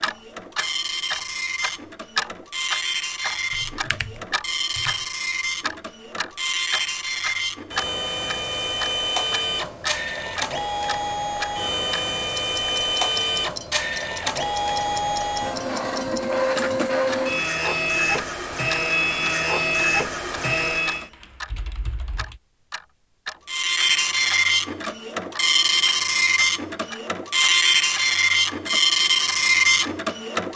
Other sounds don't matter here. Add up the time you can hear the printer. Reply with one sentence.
The printer can be heard for 28 seconds in total.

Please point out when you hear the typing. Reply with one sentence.
You can hear the typing from 3.5 to 5.0 s and from 20.9 to 22.4 s.